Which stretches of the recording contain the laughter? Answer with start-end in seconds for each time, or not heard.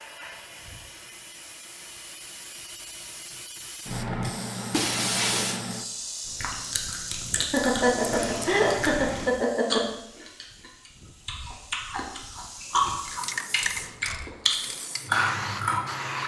7.3-9.8.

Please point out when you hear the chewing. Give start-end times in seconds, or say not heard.
6.2-15.8.